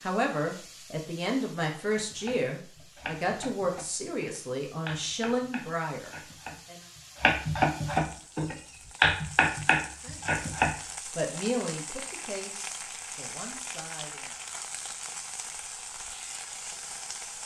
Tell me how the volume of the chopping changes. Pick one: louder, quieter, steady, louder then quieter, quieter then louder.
louder.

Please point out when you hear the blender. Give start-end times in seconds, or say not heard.
not heard.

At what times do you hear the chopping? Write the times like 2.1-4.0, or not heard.
1.9-10.8.